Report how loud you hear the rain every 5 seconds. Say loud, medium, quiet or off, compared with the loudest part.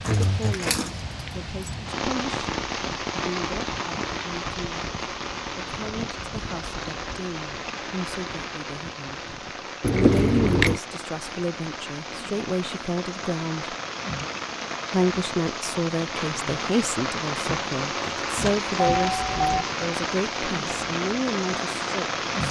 loud, medium, medium, loud, loud.